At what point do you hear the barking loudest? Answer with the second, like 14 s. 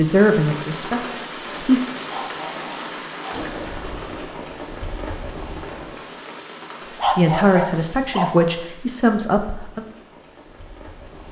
7 s.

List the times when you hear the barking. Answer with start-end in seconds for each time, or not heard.
2.0-3.4, 7.0-8.3.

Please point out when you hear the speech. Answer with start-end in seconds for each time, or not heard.
0.0-1.8, 7.2-9.8.